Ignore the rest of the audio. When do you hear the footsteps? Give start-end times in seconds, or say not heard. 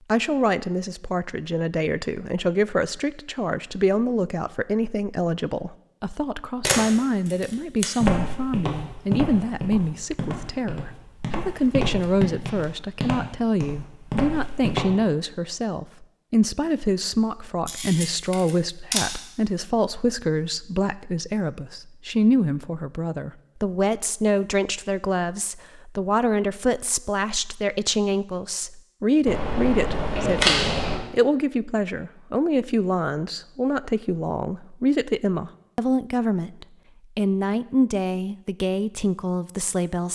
8.0-14.8.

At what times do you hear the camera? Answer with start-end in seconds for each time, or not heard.
6.6-7.8, 17.6-19.1, 29.2-30.9.